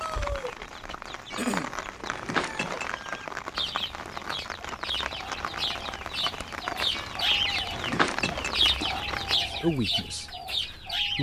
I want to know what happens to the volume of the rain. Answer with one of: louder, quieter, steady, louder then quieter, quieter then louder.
steady.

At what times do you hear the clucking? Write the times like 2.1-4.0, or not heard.
0.0-11.1.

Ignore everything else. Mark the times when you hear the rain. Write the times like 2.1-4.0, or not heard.
0.0-9.4.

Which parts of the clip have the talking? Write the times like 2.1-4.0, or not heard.
9.4-11.1.